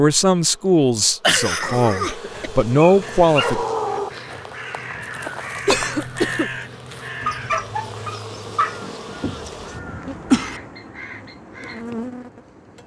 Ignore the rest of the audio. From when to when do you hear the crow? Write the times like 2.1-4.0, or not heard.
3.0-11.8.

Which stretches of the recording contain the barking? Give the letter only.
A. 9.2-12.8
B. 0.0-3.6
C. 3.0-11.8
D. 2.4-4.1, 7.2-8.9
D.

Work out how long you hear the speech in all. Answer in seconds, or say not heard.
4 s.